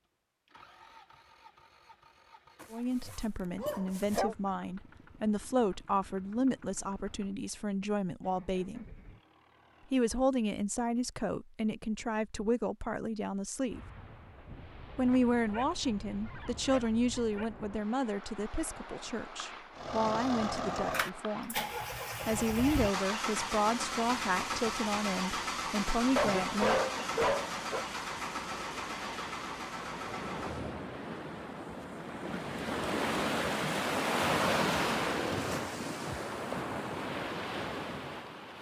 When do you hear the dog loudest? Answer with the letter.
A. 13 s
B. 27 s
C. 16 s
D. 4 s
B.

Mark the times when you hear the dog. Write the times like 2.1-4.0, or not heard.
2.6-4.3, 15.1-17.5, 26.1-27.9.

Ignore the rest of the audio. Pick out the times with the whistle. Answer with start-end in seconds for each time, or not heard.
not heard.